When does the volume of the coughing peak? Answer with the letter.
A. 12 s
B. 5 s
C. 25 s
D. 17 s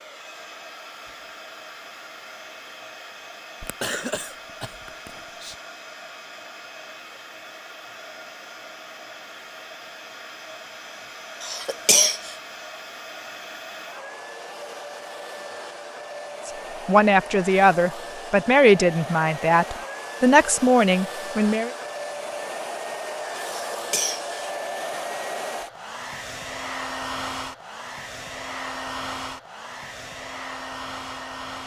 A.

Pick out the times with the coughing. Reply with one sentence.
You can hear the coughing from 3.6 to 5.5 s, from 11.4 to 12.3 s and from 23.5 to 24.4 s.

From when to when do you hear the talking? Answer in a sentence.
You can hear the talking from 16.4 to 21.7 s.